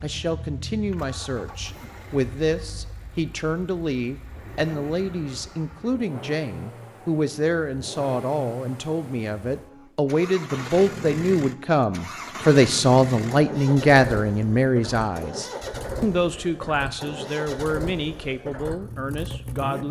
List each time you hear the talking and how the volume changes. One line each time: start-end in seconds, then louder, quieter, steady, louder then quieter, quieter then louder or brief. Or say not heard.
0.0-19.8 louder then quieter.